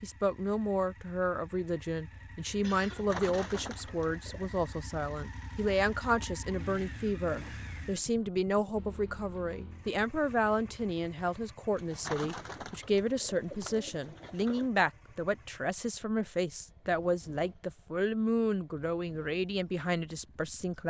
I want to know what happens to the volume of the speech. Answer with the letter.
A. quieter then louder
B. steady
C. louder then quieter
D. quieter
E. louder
B.